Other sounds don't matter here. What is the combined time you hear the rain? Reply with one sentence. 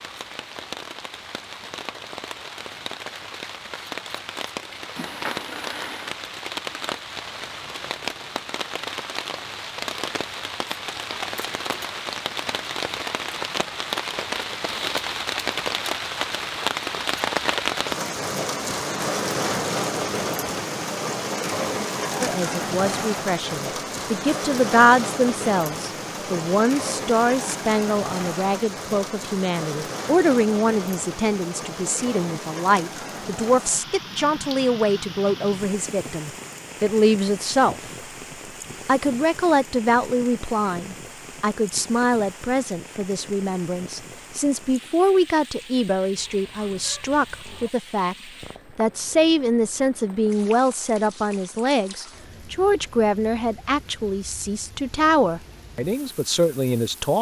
The rain can be heard for 57 seconds in total.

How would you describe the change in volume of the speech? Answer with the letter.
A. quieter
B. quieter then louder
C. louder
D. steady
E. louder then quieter
D.